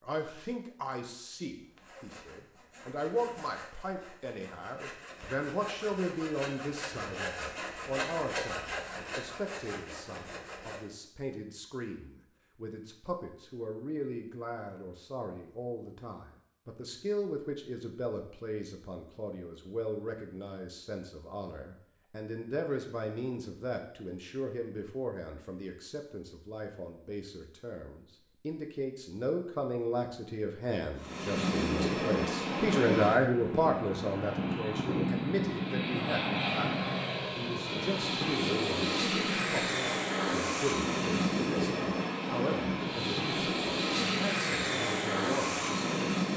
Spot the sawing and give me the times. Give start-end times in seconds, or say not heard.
1.6-10.8.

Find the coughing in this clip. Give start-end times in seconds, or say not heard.
not heard.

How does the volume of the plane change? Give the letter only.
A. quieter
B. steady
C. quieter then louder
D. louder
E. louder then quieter
B.